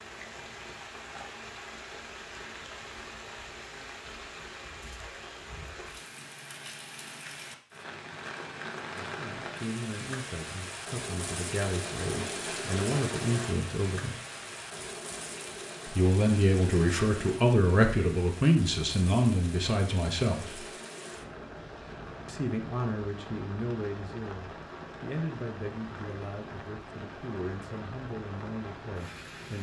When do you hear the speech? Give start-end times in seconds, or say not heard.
9.1-14.2, 15.8-20.6, 22.2-29.5.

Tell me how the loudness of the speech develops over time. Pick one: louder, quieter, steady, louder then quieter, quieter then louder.
louder then quieter.